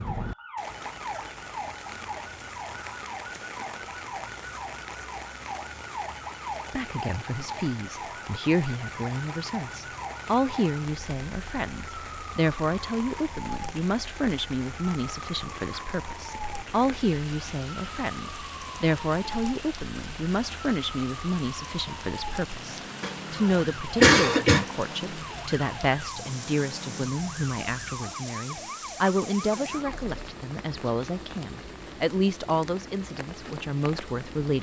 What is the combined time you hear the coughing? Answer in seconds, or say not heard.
2 s.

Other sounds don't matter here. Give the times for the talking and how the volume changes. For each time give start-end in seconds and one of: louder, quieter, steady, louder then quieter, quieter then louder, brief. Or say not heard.
6.7-34.5 steady.